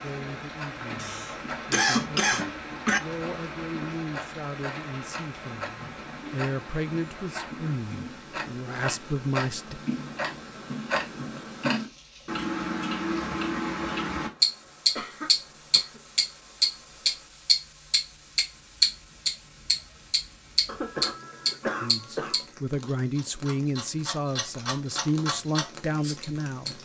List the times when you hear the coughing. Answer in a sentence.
The coughing can be heard from 1.0 to 3.0 s, from 14.9 to 16.0 s and from 20.6 to 22.4 s.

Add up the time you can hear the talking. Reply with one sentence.
The talking can be heard for 15 seconds in total.